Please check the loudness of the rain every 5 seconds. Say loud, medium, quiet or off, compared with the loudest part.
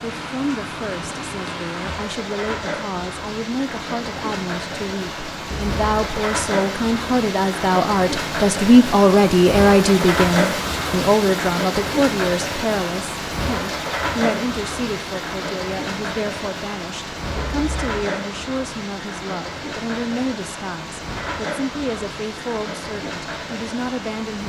medium, loud, loud, medium, medium.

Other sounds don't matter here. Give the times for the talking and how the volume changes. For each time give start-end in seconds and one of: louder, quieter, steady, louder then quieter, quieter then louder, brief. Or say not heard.
0.0-24.4 louder then quieter.